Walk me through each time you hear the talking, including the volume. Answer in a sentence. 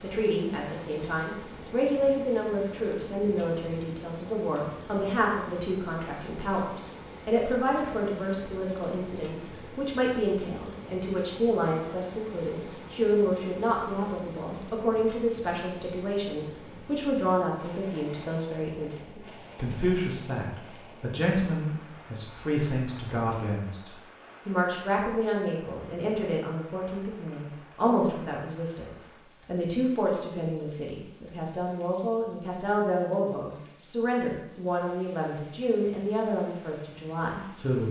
The talking can be heard from 0.0 to 37.8 s, at a steady volume.